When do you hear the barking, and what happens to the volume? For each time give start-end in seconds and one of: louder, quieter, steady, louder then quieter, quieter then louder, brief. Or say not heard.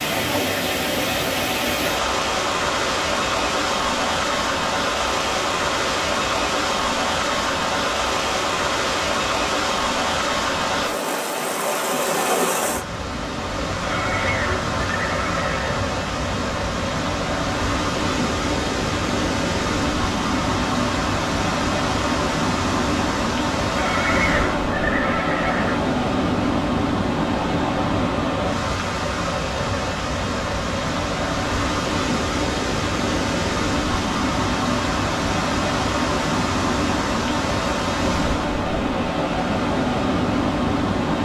not heard.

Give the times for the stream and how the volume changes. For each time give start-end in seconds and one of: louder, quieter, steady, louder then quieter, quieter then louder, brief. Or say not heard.
0.0-41.1 steady.